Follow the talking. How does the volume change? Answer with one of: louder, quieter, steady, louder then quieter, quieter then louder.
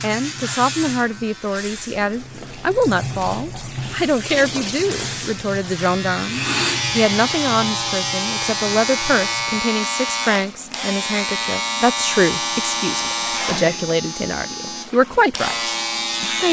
steady.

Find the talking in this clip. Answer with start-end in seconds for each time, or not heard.
0.0-16.4.